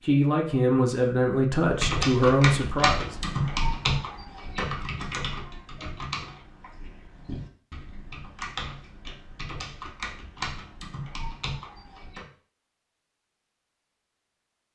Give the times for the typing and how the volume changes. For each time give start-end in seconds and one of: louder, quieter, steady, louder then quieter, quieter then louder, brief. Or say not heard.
1.6-12.2 quieter.